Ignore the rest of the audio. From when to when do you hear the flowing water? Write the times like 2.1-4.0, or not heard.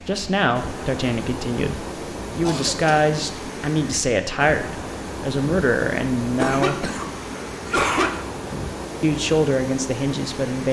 0.0-10.6.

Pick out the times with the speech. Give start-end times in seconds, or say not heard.
0.1-6.9, 9.0-10.6.